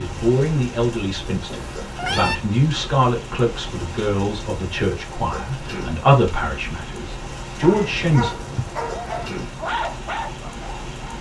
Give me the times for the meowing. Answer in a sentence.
You can hear the meowing from 1.4 to 2.4 s and from 7.7 to 8.7 s.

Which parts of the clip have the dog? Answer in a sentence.
You can hear the dog from 7.6 to 11.1 s.